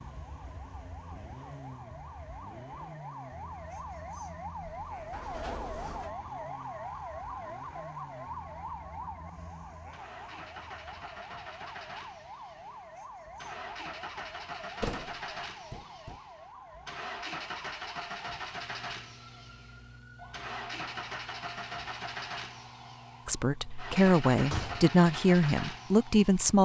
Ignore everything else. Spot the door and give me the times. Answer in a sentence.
The door can be heard from 4.8 to 6.2 s, from 14.8 to 16.2 s and from 24.3 to 24.9 s.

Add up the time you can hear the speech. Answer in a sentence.
You can hear the speech for 3 seconds altogether.